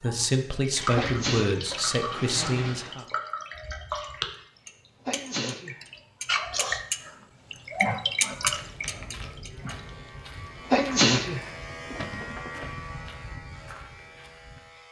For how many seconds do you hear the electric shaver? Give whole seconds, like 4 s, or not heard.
5 s.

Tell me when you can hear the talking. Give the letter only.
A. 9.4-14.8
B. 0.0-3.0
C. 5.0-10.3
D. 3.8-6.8
B.